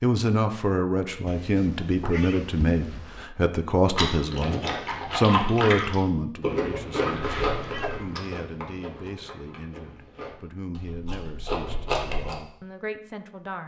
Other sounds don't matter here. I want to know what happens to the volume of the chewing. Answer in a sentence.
The loudness of the chewing goes down, then up.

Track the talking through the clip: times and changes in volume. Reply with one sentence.
You can hear the talking from 0.0 to 13.6 s, getting quieter.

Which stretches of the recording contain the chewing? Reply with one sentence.
The chewing can be heard from 3.9 to 12.3 s.